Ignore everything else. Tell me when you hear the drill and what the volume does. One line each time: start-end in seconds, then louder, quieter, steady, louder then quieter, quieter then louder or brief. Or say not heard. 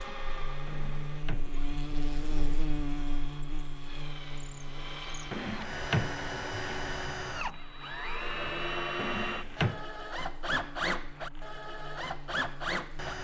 0.0-13.1 louder.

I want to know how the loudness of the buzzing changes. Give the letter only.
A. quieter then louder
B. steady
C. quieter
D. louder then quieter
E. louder
C.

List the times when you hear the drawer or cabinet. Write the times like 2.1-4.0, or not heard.
0.7-2.6, 5.3-6.8, 8.9-9.8.